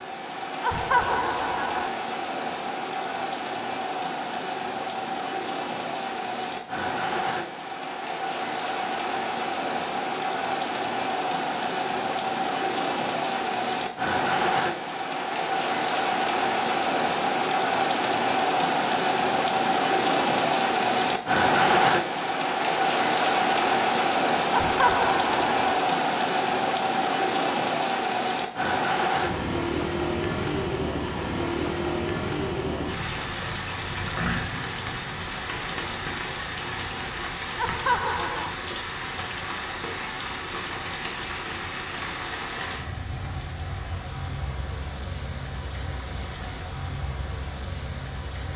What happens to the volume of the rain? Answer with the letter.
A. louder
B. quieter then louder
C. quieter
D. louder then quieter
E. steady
D.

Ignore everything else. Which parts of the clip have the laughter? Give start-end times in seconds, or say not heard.
0.6-1.9, 24.5-25.6, 37.5-38.6.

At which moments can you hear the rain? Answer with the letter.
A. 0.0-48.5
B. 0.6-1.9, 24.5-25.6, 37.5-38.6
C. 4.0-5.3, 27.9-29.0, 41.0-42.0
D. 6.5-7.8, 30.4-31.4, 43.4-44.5
A.